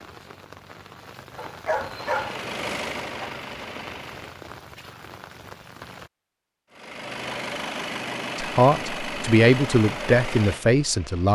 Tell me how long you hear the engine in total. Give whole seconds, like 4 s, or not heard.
7 s.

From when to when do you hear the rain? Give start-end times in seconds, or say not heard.
0.0-6.1.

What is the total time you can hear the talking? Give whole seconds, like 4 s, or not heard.
3 s.